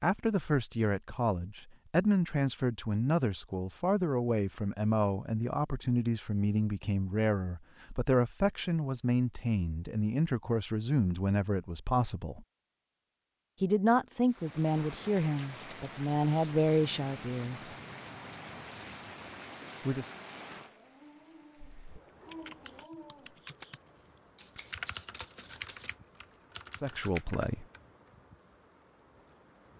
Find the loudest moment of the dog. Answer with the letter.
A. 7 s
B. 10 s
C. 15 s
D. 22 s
D.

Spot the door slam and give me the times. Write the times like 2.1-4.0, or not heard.
not heard.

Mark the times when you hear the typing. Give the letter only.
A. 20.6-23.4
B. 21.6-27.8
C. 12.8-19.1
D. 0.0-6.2
B.